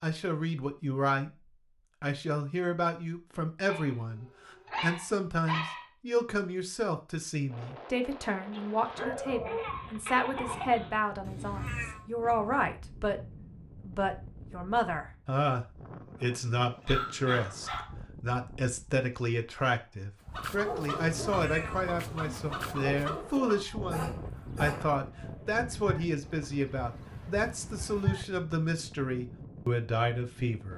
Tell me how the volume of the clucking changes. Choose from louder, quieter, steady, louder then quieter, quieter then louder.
quieter.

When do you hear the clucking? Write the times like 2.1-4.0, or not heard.
20.3-28.2.